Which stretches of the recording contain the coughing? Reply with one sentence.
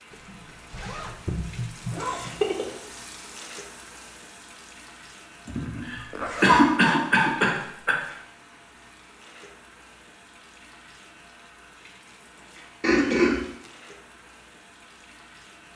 The coughing can be heard from 1.9 to 2.8 s, from 5.5 to 8.0 s and from 12.8 to 13.4 s.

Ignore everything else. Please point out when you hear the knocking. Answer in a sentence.
You can't hear the knocking here.